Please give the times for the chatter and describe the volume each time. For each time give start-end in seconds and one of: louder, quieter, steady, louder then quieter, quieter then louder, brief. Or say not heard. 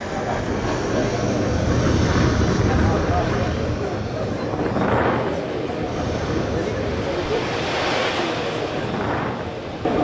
0.0-9.9 steady.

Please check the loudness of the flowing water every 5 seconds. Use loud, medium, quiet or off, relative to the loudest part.
off, loud.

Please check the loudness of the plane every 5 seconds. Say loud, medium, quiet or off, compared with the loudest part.
loud, medium.